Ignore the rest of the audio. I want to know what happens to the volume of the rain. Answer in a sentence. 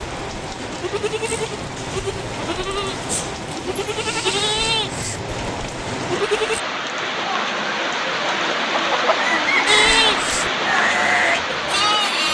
The volume of the rain goes up.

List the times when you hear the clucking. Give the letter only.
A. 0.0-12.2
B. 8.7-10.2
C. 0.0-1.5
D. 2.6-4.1
B.